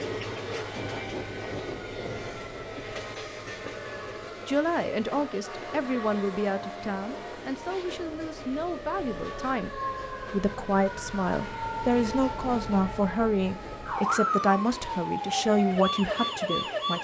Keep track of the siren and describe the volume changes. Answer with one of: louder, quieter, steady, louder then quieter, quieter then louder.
louder.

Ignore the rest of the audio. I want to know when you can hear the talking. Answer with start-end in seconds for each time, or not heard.
4.5-9.7, 10.3-16.9.